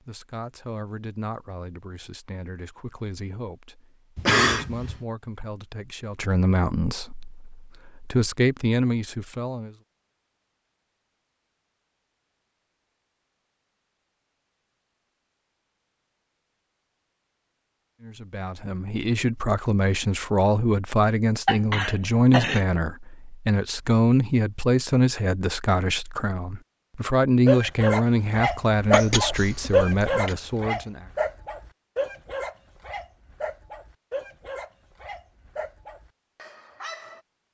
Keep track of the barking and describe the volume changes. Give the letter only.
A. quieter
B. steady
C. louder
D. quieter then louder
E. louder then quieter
A.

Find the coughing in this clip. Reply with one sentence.
The coughing can be heard from 4.2 to 5.0 s, from 21.4 to 22.6 s and from 28.9 to 30.4 s.